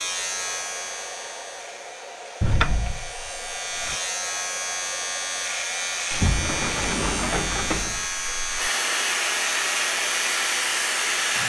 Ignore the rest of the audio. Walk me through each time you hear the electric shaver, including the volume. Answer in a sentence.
The electric shaver can be heard from 0.0 to 11.4 s, getting louder.